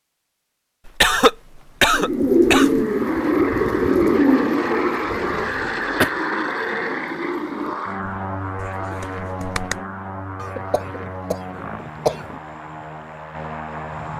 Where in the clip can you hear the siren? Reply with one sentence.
The siren can't be heard in this clip.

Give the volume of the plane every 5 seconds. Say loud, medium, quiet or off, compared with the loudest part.
loud, loud, medium.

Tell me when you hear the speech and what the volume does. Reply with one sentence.
You can't hear the speech here.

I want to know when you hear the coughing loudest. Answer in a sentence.
The loudest moment of the coughing is at 1 second.